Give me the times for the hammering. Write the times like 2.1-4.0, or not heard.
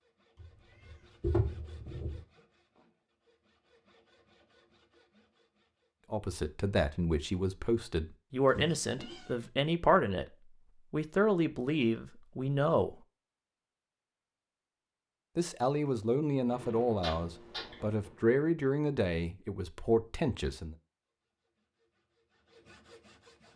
not heard.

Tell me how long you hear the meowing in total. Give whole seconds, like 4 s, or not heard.
4 s.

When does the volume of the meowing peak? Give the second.
1 s.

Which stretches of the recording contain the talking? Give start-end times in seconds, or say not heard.
6.1-10.2, 10.9-13.0, 15.3-20.8.